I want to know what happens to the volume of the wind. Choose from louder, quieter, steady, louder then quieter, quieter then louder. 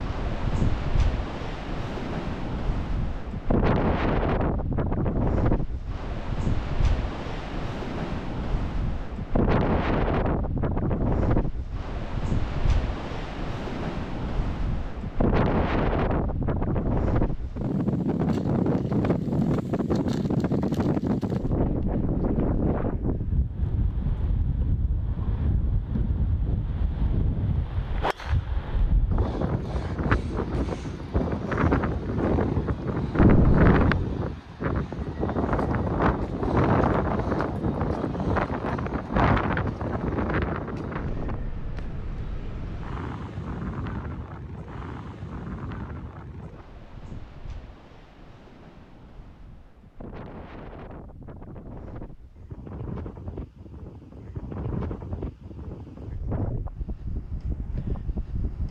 quieter.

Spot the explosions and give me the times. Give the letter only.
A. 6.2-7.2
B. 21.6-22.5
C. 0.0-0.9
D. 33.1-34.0
D.